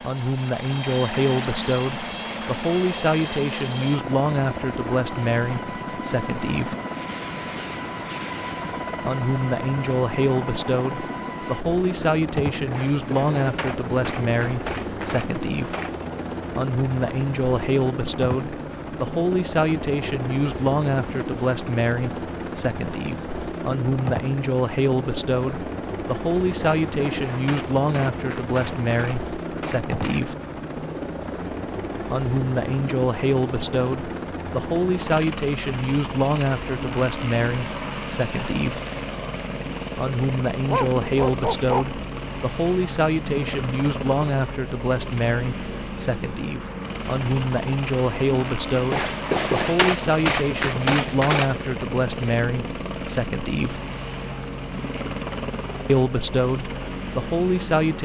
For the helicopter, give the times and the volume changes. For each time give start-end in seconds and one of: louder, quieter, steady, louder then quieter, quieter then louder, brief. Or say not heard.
0.0-58.0 steady.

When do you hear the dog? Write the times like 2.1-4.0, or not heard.
40.6-42.1.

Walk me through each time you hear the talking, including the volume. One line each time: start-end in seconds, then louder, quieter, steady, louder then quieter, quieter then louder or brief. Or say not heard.
0.0-6.8 steady
9.0-15.8 steady
16.5-30.4 steady
32.0-38.8 steady
40.0-53.8 steady
55.9-58.0 brief.